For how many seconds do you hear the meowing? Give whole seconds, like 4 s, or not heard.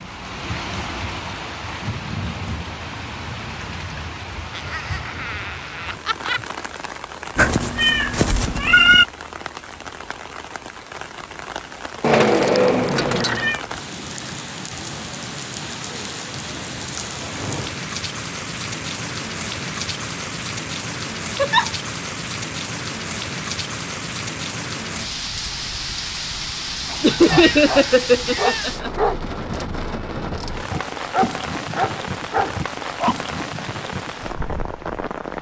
5 s.